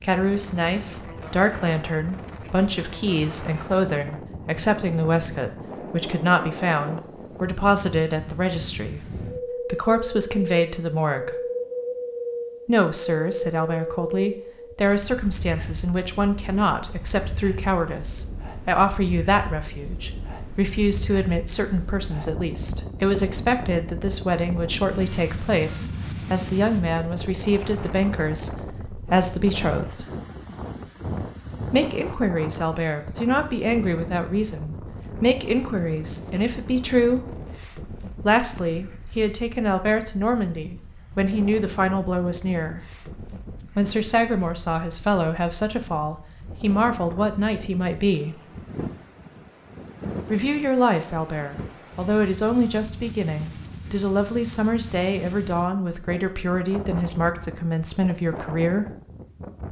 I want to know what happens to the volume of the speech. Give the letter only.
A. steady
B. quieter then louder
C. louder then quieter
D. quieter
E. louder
A.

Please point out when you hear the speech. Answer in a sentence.
You can hear the speech from 0.0 to 11.3 s, from 12.7 to 30.1 s, from 31.7 to 37.2 s, from 38.2 to 42.8 s, from 43.8 to 48.4 s and from 50.3 to 58.9 s.